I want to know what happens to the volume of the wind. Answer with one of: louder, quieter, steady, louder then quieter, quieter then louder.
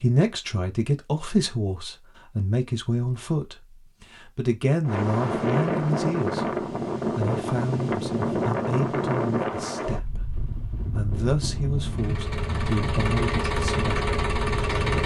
quieter.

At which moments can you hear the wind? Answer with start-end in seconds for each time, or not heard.
4.8-15.0.